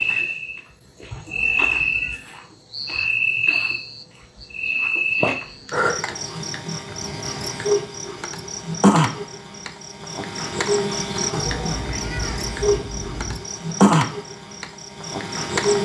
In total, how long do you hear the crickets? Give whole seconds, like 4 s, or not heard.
16 s.